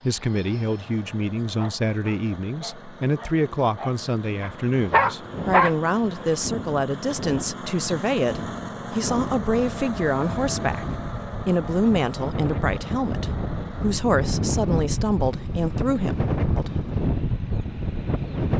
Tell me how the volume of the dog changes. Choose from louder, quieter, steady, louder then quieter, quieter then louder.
louder.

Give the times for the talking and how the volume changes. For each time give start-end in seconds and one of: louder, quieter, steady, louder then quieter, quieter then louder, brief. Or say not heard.
0.0-16.9 steady.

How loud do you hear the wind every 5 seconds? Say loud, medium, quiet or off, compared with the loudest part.
off, medium, loud, loud.